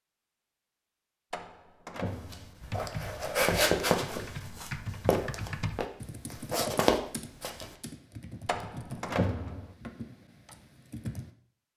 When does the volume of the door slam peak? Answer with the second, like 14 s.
9 s.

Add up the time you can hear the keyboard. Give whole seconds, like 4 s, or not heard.
9 s.